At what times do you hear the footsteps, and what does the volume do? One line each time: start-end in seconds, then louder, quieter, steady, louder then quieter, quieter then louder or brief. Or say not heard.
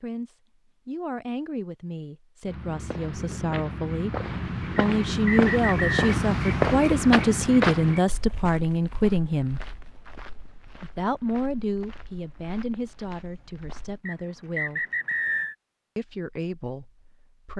2.5-14.0 louder then quieter.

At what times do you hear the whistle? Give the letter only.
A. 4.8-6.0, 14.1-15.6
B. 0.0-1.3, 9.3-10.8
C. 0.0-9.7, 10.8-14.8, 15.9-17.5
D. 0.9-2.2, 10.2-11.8
A.